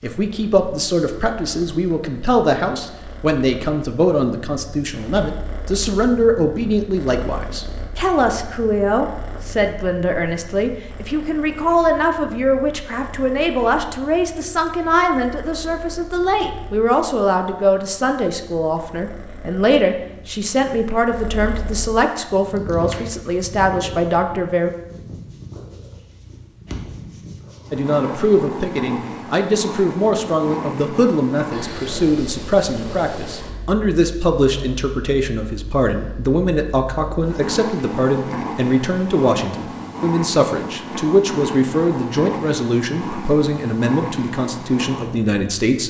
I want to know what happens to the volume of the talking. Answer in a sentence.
The volume of the talking stays about the same.